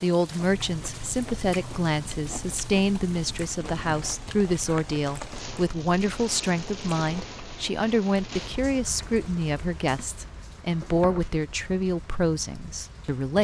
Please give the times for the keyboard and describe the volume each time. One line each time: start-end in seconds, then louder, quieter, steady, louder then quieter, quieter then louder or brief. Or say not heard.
not heard.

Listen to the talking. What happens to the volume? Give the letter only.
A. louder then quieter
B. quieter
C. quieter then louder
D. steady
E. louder
D.